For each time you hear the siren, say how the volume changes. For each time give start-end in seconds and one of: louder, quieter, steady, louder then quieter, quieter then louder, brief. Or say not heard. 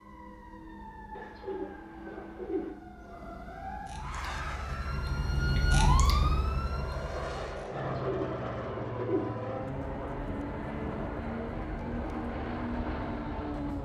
0.0-7.7 louder
9.7-13.7 steady.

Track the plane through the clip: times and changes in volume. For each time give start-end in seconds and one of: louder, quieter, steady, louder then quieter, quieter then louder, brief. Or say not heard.
4.0-13.7 louder.